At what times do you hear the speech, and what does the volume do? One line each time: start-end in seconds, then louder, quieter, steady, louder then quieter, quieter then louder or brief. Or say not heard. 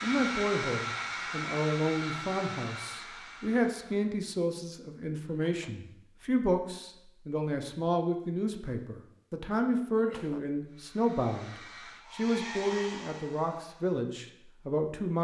0.0-15.1 steady.